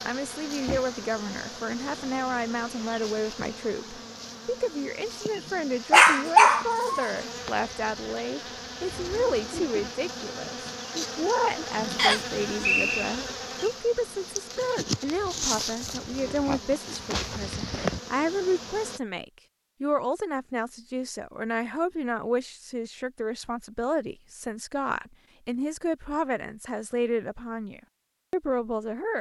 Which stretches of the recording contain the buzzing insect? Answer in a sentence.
You can hear the buzzing insect from 0.0 to 19.0 s.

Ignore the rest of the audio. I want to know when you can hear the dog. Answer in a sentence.
You can hear the dog from 5.9 to 7.1 s.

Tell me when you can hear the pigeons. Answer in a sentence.
You can't hear the pigeons here.